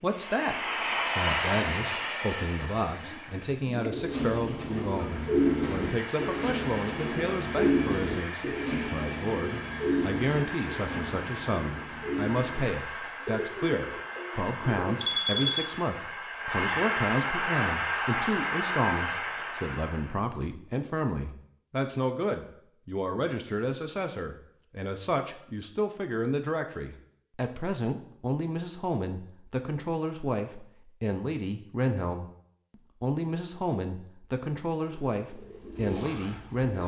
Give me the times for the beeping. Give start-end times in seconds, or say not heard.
15.0-15.7.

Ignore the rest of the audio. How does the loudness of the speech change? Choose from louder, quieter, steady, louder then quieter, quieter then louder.
steady.